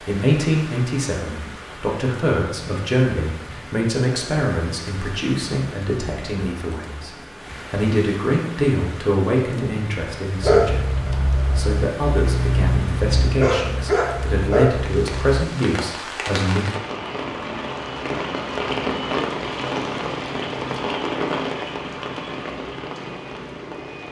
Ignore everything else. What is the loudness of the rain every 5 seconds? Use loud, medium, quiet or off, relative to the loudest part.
medium, medium, medium, loud, loud.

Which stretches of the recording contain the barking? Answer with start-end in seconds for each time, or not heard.
10.3-15.4.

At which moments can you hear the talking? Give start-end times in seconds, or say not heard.
0.0-16.6.